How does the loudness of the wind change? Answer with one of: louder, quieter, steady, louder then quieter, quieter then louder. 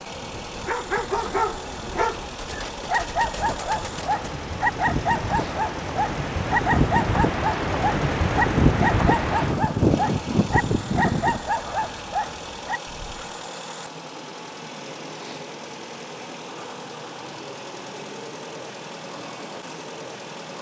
louder.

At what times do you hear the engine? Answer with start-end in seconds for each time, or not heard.
0.0-20.5.